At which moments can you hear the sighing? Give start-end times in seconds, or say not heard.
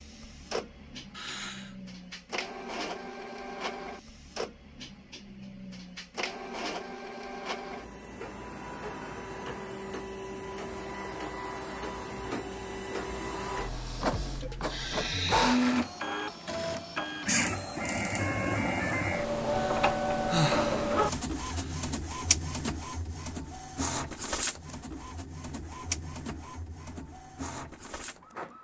1.1-1.8, 14.4-15.7, 19.6-21.8.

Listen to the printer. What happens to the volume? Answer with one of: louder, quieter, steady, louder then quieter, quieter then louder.
louder then quieter.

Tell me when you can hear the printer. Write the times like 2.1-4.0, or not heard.
0.0-28.5.